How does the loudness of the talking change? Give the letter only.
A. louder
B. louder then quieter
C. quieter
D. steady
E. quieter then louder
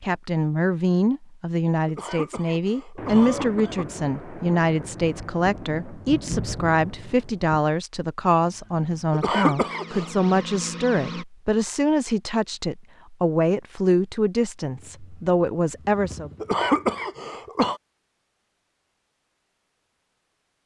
D.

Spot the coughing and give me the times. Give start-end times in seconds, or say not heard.
1.9-3.9, 9.1-10.1, 16.4-17.8.